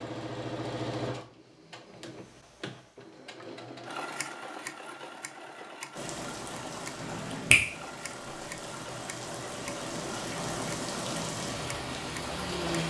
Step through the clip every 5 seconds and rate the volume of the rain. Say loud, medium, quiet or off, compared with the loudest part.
off, medium, loud.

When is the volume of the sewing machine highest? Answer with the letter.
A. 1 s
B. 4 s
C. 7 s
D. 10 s
A.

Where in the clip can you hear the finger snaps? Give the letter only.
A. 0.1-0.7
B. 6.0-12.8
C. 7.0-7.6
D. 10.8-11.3
C.